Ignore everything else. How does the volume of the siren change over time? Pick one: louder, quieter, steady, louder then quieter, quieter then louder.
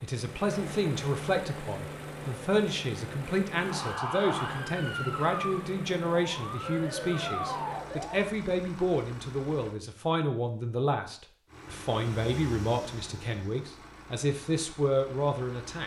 quieter then louder.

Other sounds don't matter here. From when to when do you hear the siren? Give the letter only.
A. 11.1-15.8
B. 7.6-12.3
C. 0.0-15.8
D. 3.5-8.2
D.